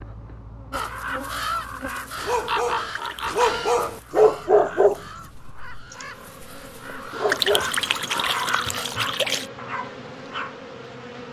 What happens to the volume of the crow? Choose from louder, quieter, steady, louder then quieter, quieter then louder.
quieter then louder.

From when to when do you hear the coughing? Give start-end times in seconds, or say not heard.
not heard.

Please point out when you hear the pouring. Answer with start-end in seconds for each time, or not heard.
2.9-3.4, 7.2-9.4.